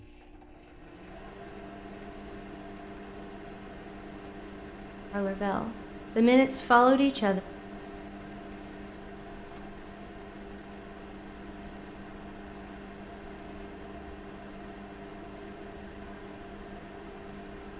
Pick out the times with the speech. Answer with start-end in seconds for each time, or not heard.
5.1-7.4.